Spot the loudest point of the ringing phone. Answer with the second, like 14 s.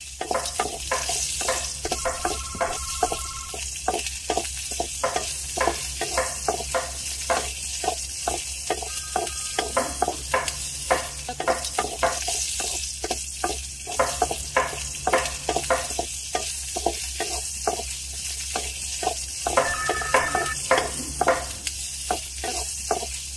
20 s.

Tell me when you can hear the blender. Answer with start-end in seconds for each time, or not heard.
not heard.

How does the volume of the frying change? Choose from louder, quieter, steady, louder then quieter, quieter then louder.
steady.